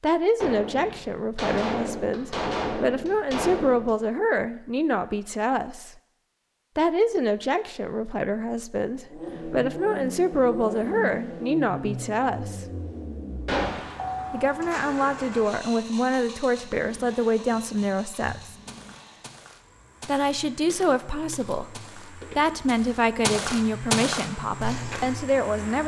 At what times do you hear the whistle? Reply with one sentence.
You can't hear the whistle here.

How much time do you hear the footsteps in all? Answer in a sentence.
You can hear the footsteps for 8 seconds altogether.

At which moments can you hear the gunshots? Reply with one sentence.
The gunshots can be heard from 0.4 to 3.9 s and from 13.4 to 13.9 s.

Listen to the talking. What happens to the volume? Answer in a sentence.
The volume of the talking stays about the same.